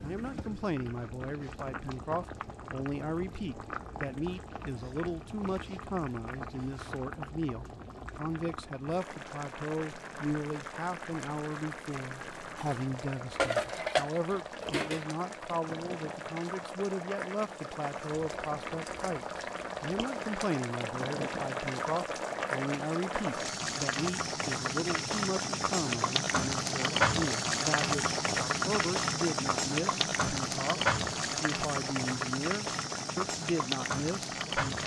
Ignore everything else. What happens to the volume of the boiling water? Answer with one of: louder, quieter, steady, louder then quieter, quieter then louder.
louder.